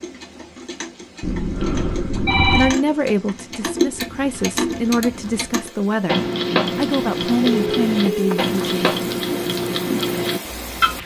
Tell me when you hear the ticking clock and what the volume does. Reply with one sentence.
You can hear the ticking clock from 0.0 to 11.0 s, getting louder.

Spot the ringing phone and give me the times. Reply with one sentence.
You can hear the ringing phone from 1.2 to 2.8 s and from 7.5 to 8.4 s.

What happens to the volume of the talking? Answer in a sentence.
The loudness of the talking stays about the same.